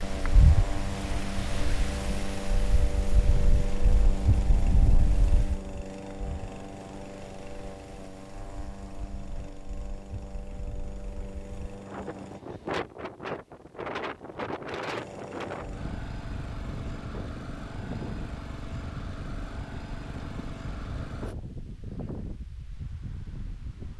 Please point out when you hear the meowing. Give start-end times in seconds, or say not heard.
not heard.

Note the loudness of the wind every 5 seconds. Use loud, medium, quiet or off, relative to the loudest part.
loud, medium, loud, medium, medium.